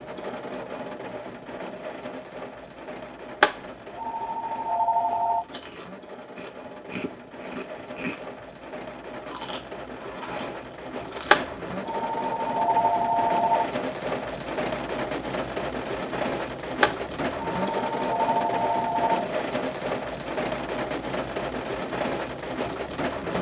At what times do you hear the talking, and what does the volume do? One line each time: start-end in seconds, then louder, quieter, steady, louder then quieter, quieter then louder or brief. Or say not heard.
not heard.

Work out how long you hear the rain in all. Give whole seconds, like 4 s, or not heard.
23 s.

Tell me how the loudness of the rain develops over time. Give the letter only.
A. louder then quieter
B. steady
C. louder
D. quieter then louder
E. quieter
C.